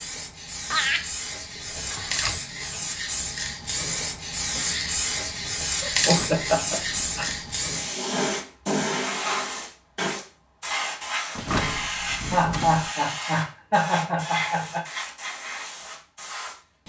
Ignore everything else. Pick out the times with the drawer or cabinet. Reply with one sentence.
The drawer or cabinet can be heard from 1.6 to 2.5 s, from 6.0 to 7.5 s and from 11.3 to 12.9 s.